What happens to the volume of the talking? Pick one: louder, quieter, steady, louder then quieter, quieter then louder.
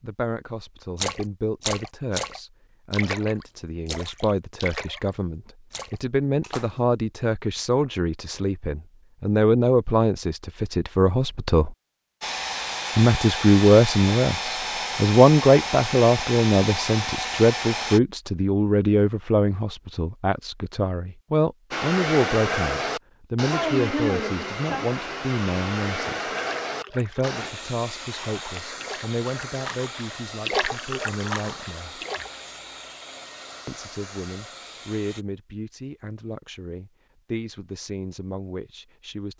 louder then quieter.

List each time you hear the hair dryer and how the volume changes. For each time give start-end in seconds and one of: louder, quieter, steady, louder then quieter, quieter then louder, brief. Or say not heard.
12.2-18.0 steady
21.7-35.2 quieter.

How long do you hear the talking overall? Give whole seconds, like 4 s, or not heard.
36 s.